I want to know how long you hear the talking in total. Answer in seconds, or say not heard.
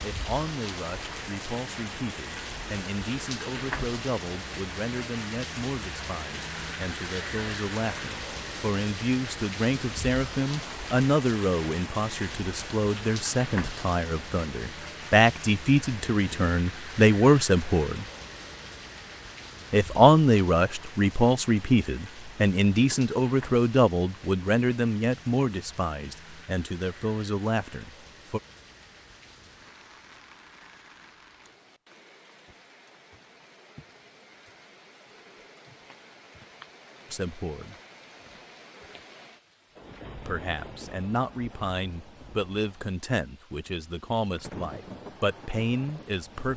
34 s.